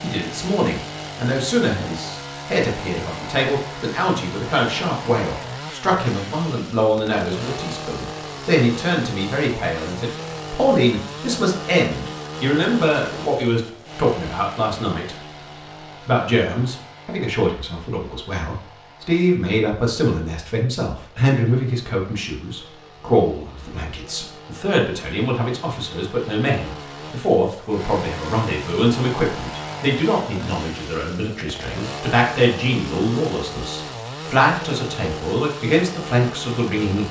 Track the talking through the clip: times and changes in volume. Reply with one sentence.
You can hear the talking from 0.0 to 15.2 s, at a steady volume; and from 16.1 to 37.0 s, at a steady volume.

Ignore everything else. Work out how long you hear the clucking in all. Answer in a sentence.
The clucking can't be heard in this clip.